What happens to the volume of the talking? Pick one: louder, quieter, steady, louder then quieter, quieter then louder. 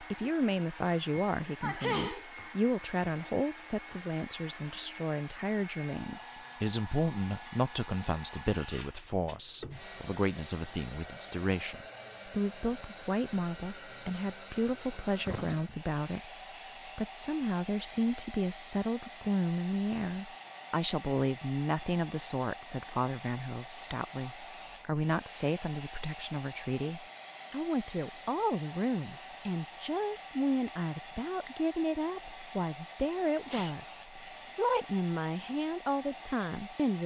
steady.